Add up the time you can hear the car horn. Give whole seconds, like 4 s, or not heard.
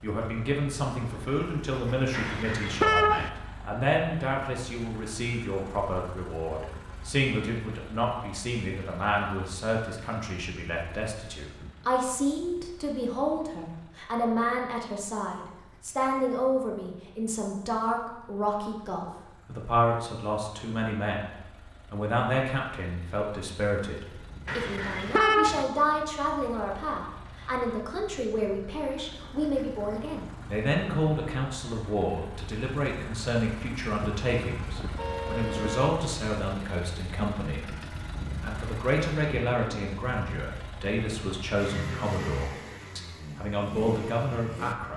4 s.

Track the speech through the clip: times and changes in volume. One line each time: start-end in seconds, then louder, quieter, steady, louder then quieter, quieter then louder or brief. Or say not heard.
0.0-44.9 steady.